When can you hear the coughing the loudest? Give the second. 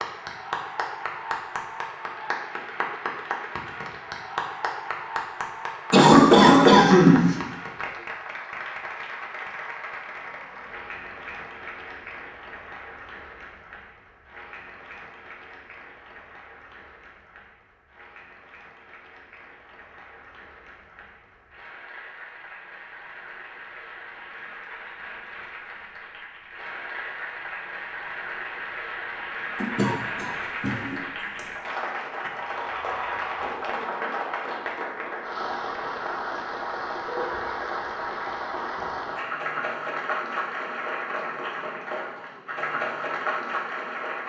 6 s.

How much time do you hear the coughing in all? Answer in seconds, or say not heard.
3 s.